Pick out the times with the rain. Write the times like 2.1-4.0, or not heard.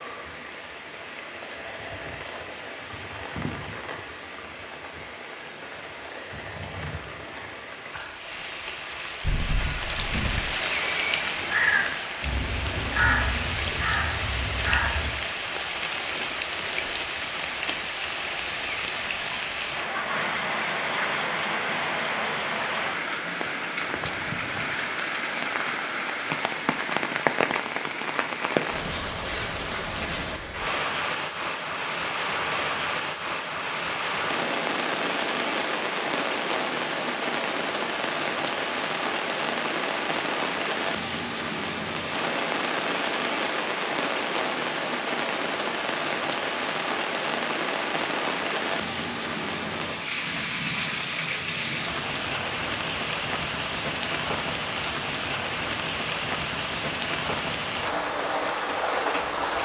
0.0-59.6.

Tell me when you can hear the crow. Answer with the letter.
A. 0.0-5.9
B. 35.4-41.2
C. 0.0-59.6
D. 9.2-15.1
D.